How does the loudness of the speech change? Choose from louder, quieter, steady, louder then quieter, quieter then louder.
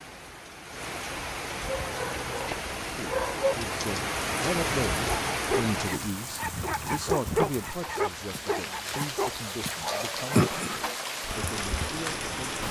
quieter.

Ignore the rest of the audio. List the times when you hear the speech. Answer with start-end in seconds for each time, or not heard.
2.8-12.5.